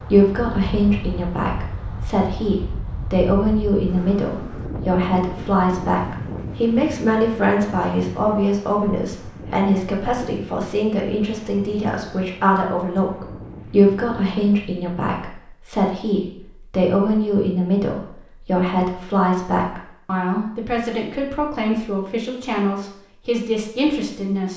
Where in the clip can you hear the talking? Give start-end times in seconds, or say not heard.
0.0-24.5.